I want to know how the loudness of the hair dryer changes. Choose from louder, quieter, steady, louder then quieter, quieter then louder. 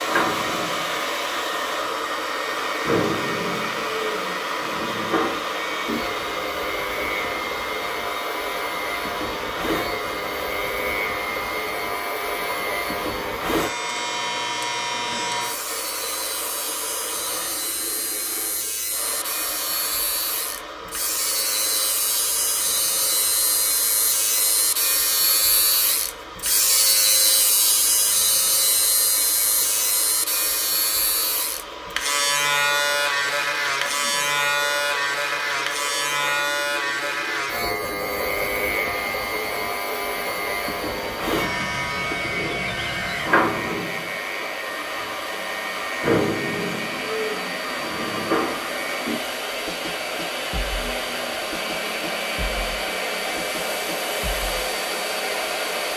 quieter then louder.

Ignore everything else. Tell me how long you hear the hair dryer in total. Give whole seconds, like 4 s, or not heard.
56 s.